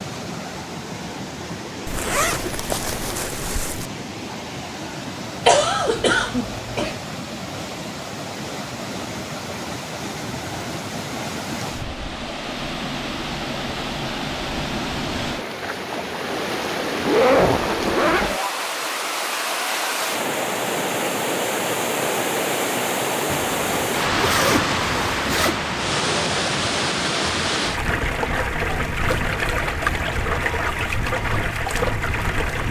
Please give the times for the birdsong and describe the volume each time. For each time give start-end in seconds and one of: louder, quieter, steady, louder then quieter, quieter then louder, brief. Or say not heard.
not heard.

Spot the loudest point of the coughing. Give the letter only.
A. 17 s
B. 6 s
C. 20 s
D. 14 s
B.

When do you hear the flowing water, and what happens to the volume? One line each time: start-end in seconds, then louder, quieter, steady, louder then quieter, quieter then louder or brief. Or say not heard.
0.0-32.6 louder.